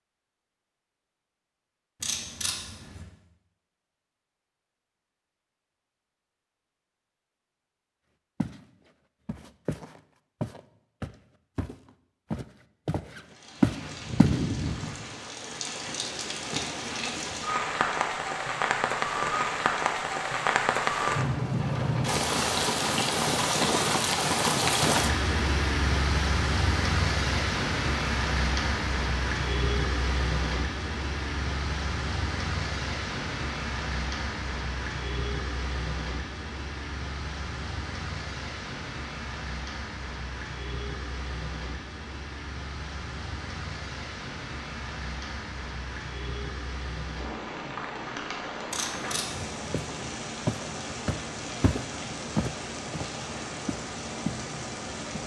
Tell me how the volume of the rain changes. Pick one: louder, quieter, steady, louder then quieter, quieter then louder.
quieter.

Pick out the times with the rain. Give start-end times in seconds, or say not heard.
13.3-55.2.